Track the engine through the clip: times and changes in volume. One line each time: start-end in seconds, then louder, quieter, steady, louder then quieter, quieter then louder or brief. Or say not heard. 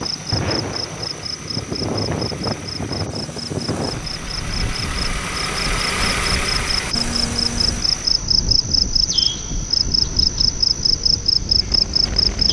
0.0-8.2 louder.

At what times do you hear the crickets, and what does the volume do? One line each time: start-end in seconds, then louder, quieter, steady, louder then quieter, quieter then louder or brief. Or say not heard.
0.0-12.4 louder.